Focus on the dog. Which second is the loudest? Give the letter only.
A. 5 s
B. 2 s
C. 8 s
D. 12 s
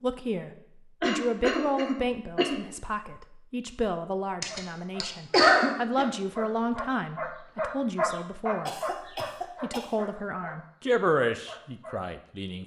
C.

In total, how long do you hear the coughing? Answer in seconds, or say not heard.
5 s.